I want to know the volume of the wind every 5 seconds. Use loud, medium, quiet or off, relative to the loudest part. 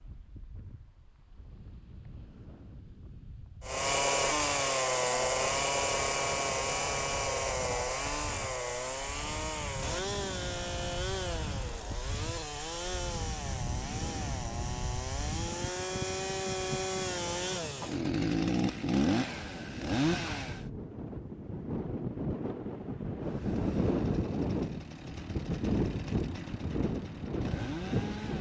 quiet, quiet, medium, medium, loud, loud.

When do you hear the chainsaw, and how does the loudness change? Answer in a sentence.
You can hear the chainsaw from 3.6 to 20.7 s, getting quieter then louder; and from 23.2 to 28.3 s, getting louder.